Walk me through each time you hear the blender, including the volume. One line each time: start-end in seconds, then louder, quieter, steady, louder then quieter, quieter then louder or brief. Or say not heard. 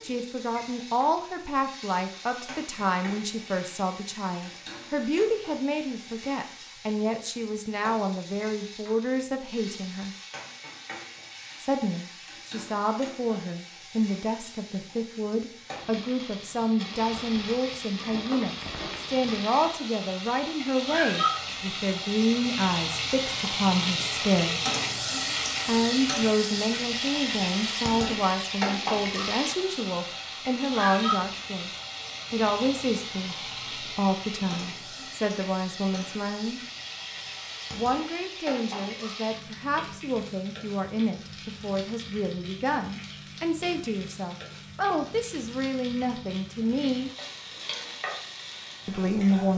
not heard.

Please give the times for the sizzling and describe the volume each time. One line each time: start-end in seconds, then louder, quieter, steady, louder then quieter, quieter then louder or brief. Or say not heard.
0.0-49.5 louder then quieter.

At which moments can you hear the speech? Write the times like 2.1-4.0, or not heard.
0.0-10.2, 11.6-24.6, 25.6-31.7, 32.3-36.6, 37.8-47.1, 48.9-49.5.